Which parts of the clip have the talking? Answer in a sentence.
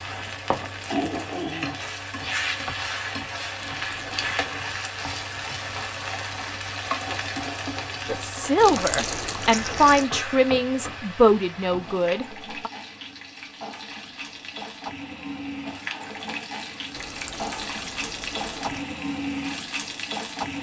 The talking can be heard from 8.1 to 12.7 s.